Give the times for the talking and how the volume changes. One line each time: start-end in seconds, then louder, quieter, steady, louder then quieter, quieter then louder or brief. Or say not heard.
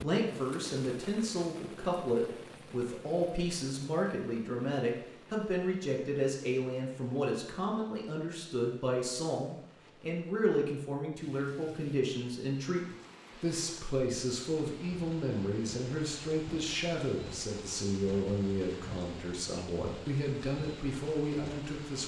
0.0-22.0 steady.